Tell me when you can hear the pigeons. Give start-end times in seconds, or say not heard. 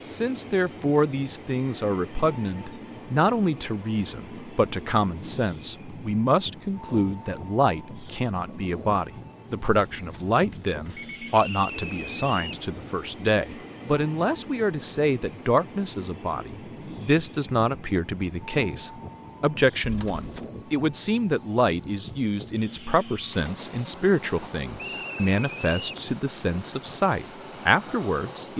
not heard.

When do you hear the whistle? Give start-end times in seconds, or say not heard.
11.4-12.6, 24.8-26.0.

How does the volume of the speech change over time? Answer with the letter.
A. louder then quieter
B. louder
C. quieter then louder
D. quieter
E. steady
E.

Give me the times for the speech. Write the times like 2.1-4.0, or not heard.
0.1-28.5.